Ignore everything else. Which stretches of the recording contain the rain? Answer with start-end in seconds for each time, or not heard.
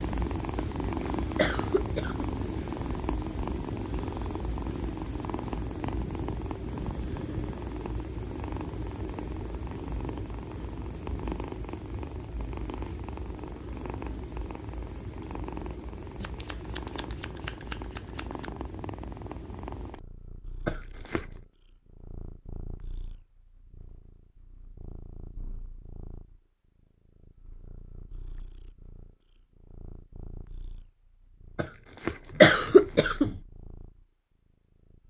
not heard.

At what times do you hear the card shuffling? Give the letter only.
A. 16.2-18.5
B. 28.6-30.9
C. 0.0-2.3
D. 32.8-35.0
A.